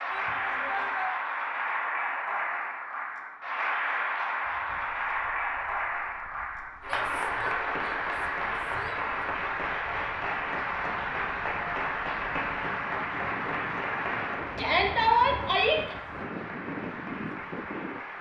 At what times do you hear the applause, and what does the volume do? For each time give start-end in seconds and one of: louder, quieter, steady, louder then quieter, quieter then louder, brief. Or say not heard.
0.0-18.1 quieter.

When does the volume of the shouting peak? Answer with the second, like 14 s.
15 s.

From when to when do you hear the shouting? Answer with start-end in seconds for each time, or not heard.
0.1-1.1, 6.8-9.2, 14.6-15.8.